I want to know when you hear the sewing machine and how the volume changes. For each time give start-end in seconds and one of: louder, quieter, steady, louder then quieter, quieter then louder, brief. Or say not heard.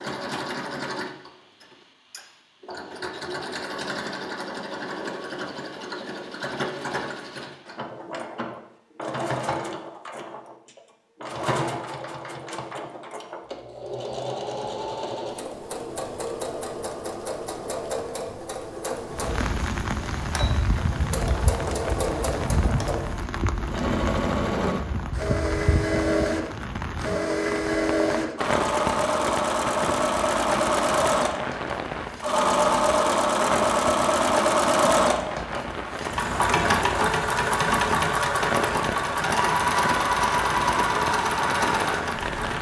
0.0-42.5 louder.